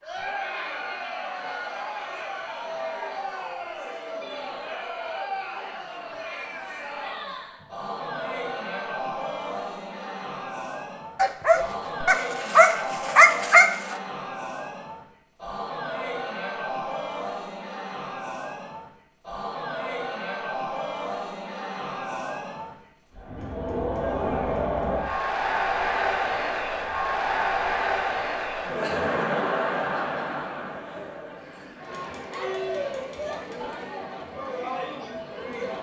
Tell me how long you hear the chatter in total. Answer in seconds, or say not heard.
36 s.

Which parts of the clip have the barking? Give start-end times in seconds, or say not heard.
11.2-13.9.